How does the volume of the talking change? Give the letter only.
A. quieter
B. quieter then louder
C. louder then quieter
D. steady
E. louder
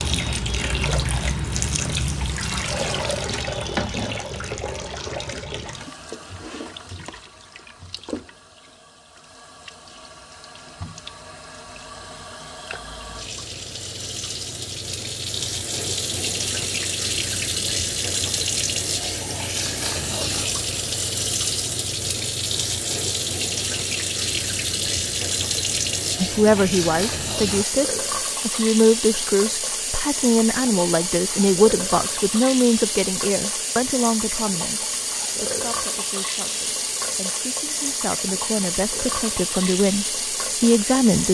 B.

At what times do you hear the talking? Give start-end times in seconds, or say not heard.
26.1-41.2.